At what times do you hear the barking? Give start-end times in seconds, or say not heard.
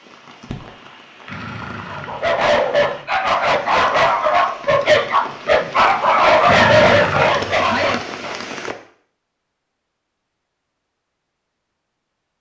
1.9-8.4.